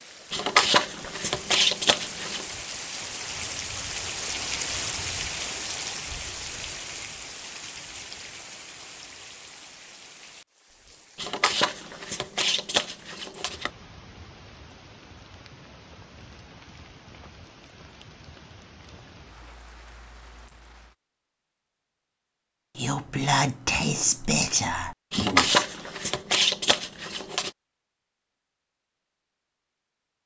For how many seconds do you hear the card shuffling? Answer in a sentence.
The card shuffling can be heard for 7 seconds in total.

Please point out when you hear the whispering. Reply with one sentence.
You can hear the whispering from 22.8 to 25.6 s.